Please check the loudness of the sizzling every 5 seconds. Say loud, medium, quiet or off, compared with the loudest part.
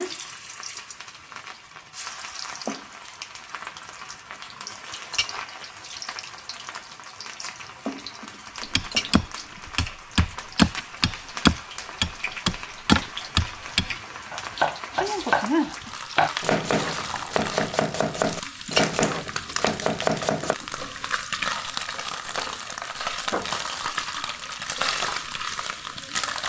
medium, medium, medium, loud, loud, loud.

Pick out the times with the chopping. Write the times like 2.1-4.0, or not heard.
8.7-20.6.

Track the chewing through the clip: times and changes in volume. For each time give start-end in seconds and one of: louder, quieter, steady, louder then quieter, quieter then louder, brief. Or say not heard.
not heard.